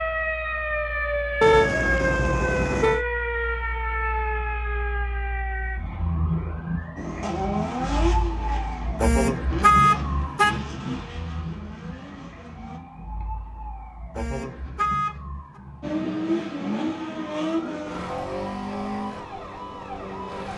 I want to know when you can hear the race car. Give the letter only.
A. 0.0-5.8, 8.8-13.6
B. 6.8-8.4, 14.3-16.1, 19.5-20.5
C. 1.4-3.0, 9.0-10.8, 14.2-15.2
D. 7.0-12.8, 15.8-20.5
D.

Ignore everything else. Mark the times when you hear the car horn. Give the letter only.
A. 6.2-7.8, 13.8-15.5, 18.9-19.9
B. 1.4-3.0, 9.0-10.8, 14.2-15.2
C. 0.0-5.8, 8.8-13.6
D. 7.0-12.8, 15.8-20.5
B.